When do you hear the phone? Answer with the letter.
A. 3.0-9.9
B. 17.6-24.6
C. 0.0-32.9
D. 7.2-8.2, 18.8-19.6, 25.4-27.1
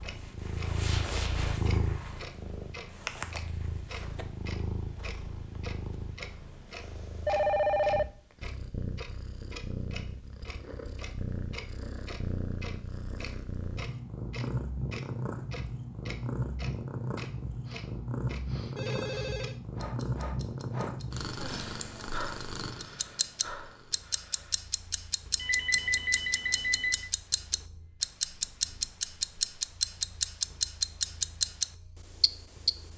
D.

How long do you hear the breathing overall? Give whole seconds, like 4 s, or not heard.
7 s.